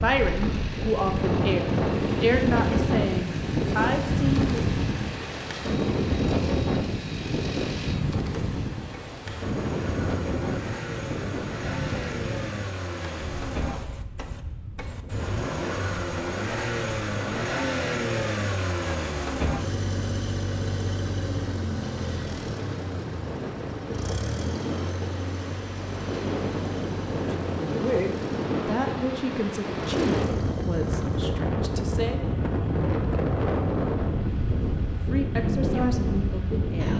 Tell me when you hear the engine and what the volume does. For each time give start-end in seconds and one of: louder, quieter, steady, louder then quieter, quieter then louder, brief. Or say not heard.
0.0-36.9 louder then quieter.